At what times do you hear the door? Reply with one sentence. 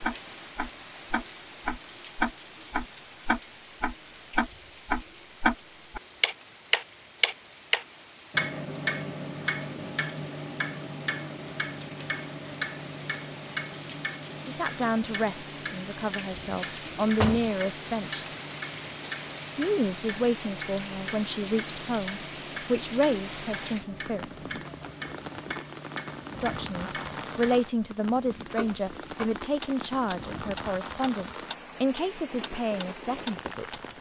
The door can be heard from 16.6 to 17.6 s.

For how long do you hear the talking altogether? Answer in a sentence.
You can hear the talking for 16 seconds altogether.